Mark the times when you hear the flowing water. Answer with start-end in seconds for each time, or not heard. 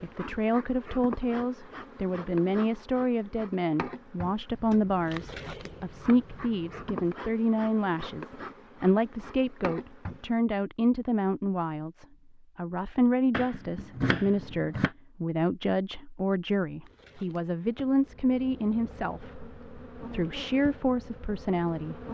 not heard.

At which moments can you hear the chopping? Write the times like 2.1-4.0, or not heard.
4.5-7.2, 13.3-14.9.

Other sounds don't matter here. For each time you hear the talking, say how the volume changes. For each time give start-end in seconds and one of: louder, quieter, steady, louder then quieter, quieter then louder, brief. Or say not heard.
0.0-22.0 steady.